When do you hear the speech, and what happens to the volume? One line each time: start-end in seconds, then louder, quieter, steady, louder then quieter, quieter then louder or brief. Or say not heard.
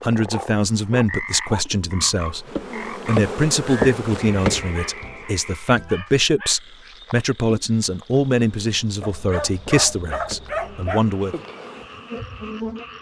0.0-2.5 brief
3.0-11.3 steady.